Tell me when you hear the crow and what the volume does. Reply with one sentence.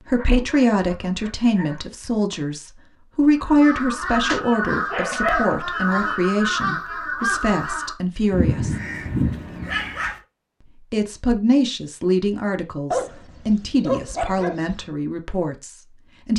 You can hear the crow from 3.4 to 10.1 s, at a steady volume.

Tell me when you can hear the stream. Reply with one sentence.
The stream can't be heard in this clip.